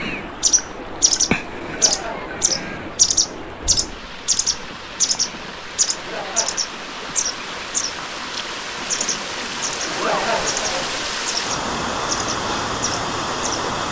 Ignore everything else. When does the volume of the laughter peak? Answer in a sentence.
The loudest moment of the laughter is at 10 seconds.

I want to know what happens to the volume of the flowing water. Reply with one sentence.
The volume of the flowing water goes up.